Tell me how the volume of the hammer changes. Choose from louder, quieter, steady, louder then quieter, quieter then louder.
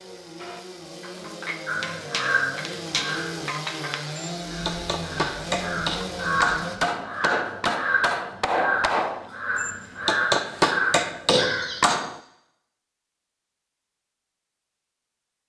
louder.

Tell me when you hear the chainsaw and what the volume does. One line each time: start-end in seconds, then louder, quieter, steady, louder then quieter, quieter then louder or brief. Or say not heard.
0.0-6.8 louder.